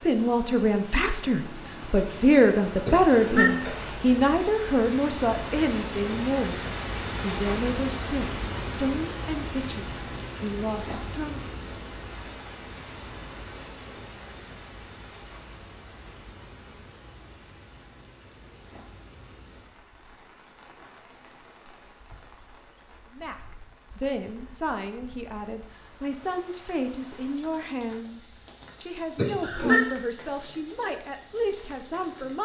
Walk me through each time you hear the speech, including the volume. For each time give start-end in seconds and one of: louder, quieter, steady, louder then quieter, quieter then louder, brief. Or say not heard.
0.0-6.6 louder then quieter
7.2-11.5 quieter then louder
23.1-32.4 steady.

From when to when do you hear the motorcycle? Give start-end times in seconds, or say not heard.
not heard.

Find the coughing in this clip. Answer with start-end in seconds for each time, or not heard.
2.9-3.7, 29.1-29.9.